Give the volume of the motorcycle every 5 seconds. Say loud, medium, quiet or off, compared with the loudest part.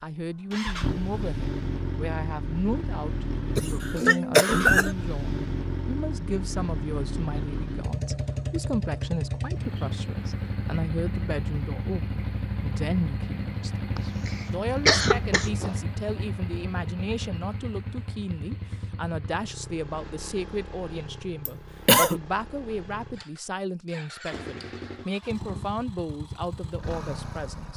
loud, loud, loud, medium, medium, medium.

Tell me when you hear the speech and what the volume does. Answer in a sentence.
The speech can be heard from 0.0 to 27.7 s, at a steady volume.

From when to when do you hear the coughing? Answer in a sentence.
You can hear the coughing from 3.5 to 5.0 s, from 13.9 to 15.7 s and from 21.4 to 22.2 s.